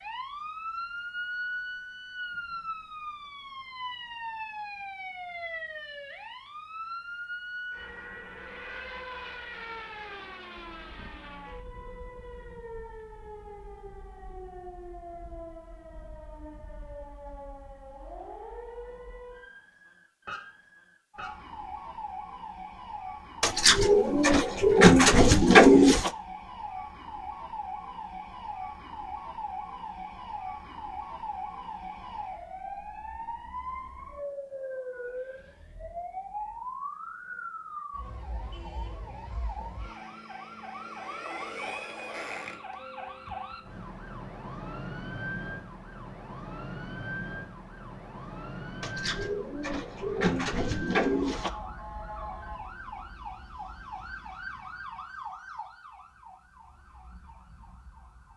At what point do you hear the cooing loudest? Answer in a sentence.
The loudest moment of the cooing is at 26 seconds.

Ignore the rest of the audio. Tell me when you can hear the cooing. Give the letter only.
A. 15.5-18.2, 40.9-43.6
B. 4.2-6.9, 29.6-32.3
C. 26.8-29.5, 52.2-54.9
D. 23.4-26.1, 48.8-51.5
D.